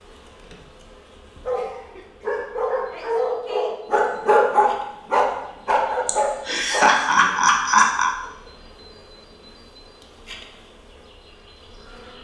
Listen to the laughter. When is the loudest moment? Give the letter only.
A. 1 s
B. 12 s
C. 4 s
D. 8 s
D.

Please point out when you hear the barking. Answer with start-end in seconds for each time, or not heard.
1.4-6.9.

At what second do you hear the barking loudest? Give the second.
4 s.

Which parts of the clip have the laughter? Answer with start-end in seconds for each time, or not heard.
6.0-8.2.